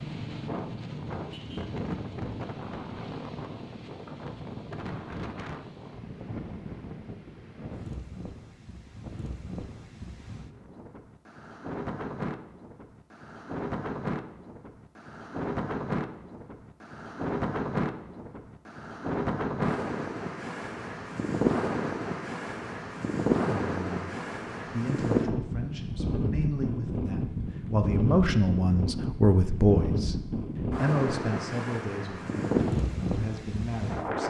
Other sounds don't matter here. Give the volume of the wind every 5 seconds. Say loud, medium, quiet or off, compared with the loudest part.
medium, medium, medium, loud, loud, loud, loud.